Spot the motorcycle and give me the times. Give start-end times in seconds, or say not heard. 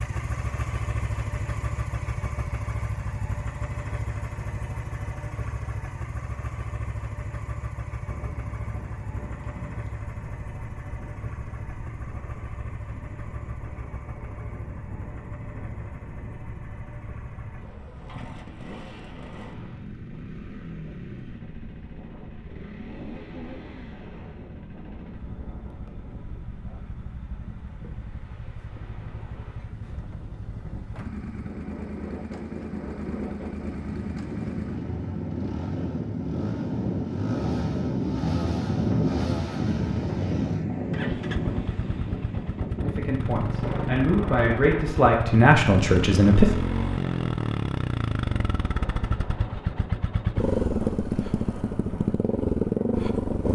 0.0-53.5.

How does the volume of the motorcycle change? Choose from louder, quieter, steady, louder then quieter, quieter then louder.
quieter then louder.